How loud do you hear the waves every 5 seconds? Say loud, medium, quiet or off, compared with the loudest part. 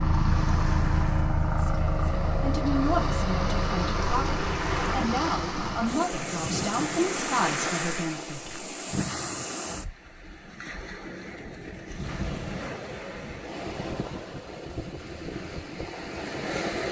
loud, loud, medium, loud.